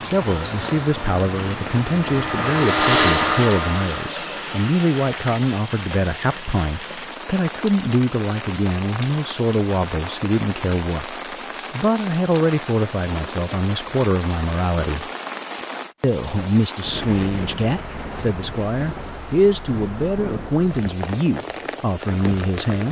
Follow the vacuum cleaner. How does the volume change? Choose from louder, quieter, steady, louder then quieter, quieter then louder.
louder then quieter.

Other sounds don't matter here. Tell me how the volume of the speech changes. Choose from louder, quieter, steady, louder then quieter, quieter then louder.
steady.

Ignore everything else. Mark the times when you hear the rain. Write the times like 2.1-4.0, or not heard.
0.0-22.8.